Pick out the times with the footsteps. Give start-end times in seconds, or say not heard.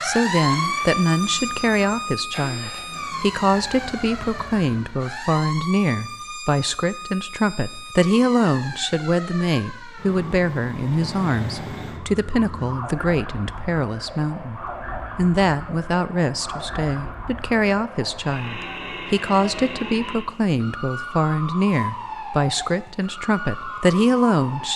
not heard.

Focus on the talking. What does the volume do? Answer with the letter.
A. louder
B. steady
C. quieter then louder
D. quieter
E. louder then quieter
B.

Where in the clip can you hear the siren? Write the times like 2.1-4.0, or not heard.
0.0-24.7.